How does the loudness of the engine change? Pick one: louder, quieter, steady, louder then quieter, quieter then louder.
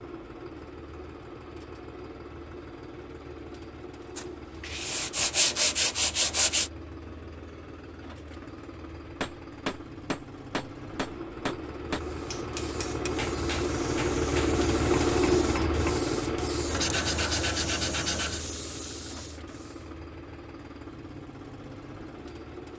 louder then quieter.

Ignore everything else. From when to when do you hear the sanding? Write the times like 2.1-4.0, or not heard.
4.2-6.7, 16.7-18.4.